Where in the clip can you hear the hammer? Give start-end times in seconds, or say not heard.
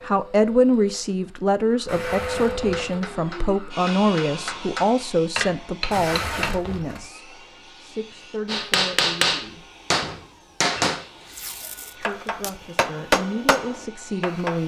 2.7-6.5, 8.4-14.6.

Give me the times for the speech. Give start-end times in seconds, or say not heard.
0.0-9.7, 11.9-14.6.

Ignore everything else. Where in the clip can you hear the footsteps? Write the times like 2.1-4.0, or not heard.
not heard.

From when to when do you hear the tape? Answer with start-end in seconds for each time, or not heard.
1.9-2.9, 5.9-7.0, 11.3-12.5.